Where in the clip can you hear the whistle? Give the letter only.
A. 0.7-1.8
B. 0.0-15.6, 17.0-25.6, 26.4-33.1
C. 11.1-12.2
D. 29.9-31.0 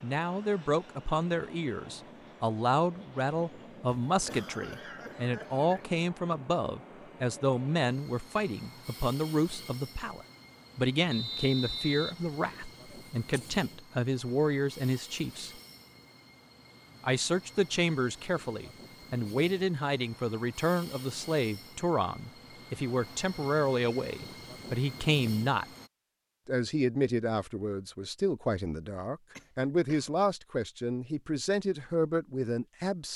C.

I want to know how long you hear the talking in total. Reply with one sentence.
The talking can be heard for 31 seconds in total.